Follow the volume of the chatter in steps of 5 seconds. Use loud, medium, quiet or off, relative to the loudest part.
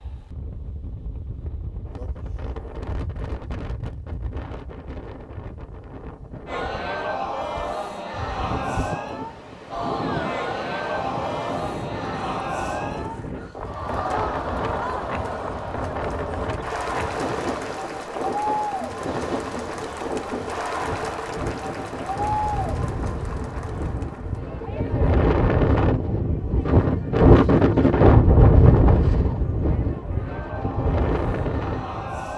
off, loud, loud, loud, loud, quiet, medium.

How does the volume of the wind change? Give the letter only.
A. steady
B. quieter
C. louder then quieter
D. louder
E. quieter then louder
D.